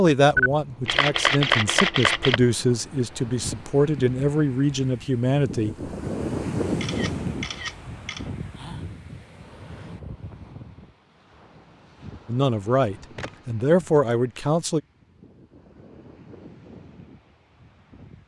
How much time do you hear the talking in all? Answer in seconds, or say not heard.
8 s.